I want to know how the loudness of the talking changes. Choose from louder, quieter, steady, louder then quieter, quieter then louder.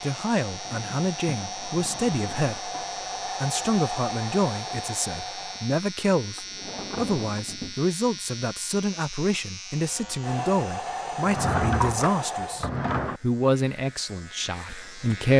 steady.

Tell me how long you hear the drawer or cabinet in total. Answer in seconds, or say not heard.
5 s.